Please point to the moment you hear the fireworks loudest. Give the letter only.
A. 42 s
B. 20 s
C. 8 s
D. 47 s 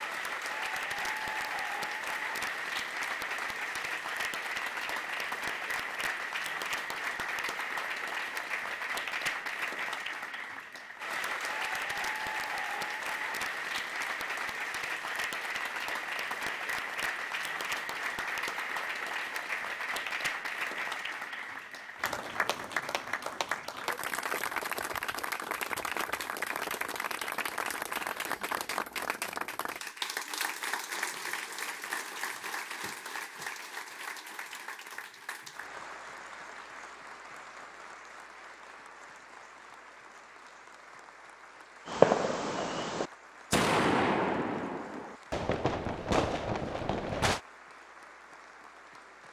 A.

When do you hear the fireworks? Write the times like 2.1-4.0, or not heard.
41.9-47.4.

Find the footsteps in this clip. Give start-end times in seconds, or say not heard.
not heard.